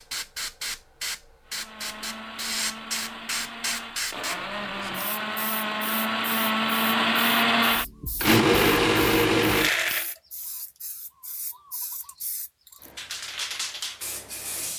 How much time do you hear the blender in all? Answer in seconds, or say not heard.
9 s.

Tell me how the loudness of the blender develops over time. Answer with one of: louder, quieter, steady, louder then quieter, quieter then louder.
louder.